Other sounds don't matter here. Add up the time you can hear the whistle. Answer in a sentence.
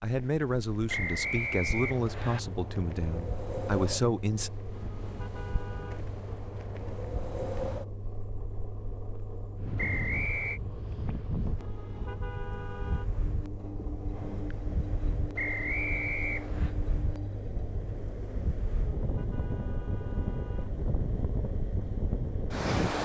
The whistle can be heard for 4 seconds in total.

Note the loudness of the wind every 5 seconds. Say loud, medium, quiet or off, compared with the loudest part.
medium, medium, medium, medium, loud.